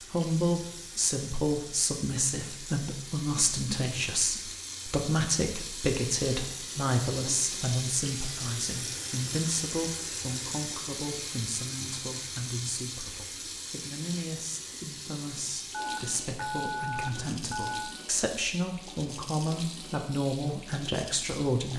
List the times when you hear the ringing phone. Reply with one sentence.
The ringing phone can be heard from 15.7 to 17.9 s.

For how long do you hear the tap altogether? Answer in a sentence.
You can hear the tap for 22 seconds altogether.